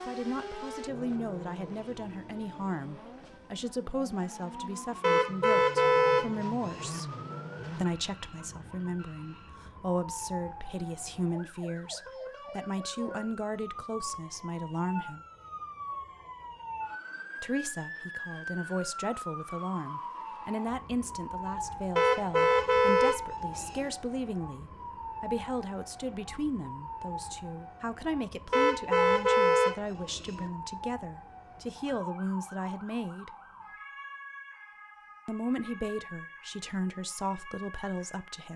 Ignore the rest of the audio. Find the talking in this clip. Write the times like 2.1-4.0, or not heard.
0.1-7.0, 7.8-15.2, 17.4-33.3, 35.2-38.5.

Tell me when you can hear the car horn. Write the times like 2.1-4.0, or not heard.
5.0-7.0, 21.9-23.9, 28.5-30.5.